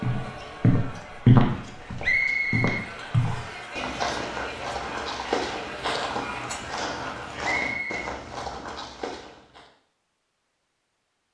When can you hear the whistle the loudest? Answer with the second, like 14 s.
2 s.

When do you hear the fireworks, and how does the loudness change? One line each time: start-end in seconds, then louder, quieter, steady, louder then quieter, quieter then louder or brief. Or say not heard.
not heard.